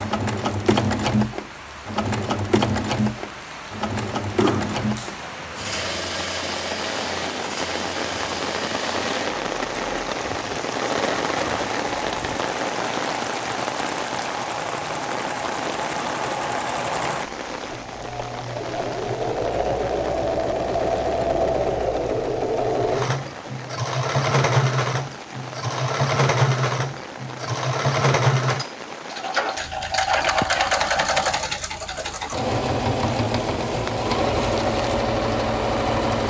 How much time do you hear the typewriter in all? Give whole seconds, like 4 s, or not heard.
not heard.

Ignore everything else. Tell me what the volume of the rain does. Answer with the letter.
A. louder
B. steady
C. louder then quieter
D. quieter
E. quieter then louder
C.